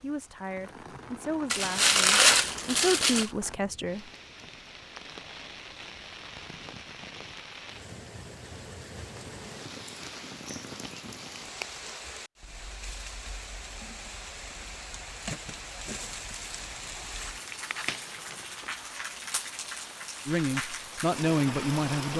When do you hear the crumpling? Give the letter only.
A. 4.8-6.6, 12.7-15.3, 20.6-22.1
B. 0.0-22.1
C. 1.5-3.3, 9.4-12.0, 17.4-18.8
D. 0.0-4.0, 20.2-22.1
C.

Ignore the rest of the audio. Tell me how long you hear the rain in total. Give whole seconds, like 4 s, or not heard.
22 s.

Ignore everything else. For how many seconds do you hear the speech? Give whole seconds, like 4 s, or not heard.
6 s.